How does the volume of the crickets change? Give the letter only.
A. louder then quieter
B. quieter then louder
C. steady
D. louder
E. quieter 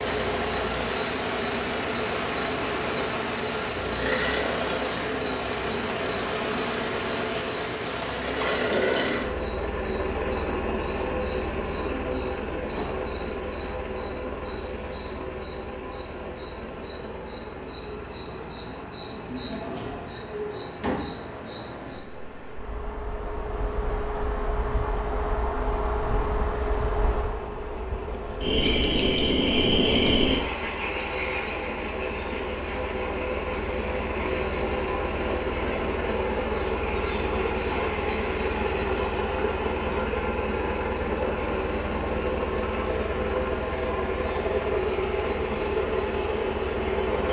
A.